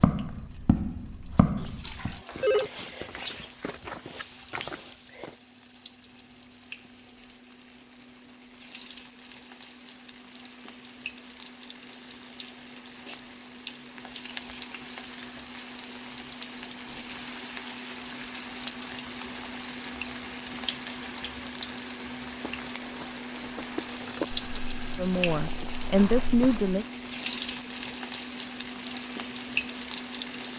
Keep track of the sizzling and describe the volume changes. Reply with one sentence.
The volume of the sizzling goes up.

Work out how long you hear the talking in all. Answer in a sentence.
The talking can be heard for 2 seconds in total.